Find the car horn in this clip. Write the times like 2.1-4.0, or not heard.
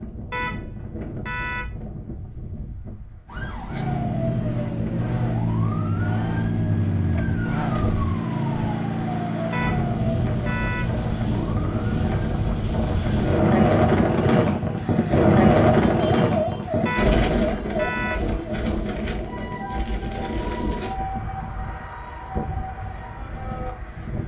0.3-1.7, 9.5-10.9, 16.9-18.2.